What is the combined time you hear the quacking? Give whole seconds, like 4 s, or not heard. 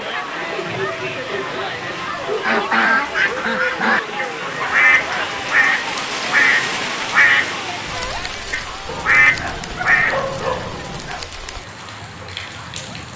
8 s.